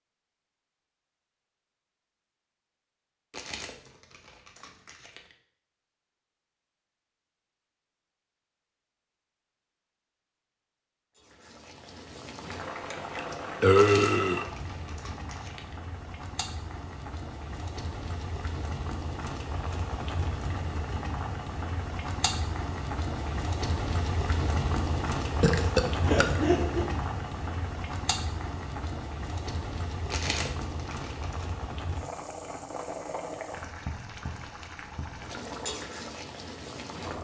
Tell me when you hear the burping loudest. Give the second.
14 s.